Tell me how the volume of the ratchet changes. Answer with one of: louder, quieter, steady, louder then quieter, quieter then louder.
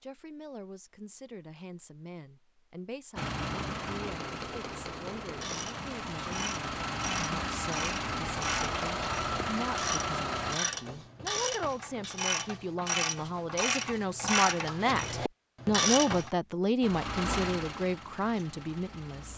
louder.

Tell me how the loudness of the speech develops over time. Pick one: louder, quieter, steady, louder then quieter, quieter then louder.
louder.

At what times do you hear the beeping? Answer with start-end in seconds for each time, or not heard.
not heard.